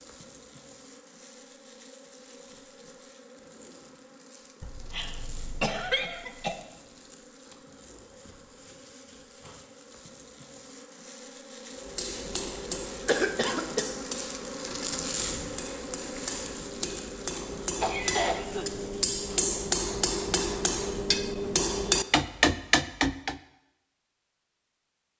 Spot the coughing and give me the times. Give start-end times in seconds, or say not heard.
4.6-6.5, 13.1-13.9, 17.8-18.6.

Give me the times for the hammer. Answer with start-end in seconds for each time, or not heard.
11.8-23.4.